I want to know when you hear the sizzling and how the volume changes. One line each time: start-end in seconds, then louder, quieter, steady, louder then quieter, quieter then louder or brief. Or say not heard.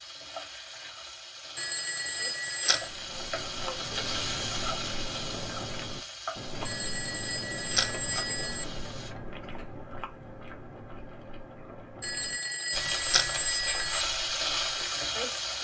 0.0-9.2 louder then quieter
12.7-15.5 brief.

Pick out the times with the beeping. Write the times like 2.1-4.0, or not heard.
1.6-2.9, 6.7-8.7, 12.0-14.1.